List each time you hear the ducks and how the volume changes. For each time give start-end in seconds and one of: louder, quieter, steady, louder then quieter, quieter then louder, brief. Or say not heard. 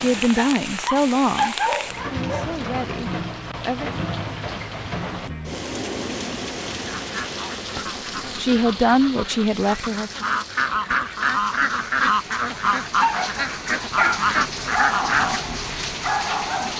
6.8-15.4 louder.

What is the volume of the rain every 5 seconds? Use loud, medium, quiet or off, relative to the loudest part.
loud, loud, medium, loud.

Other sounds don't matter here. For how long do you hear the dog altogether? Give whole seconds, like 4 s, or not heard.
6 s.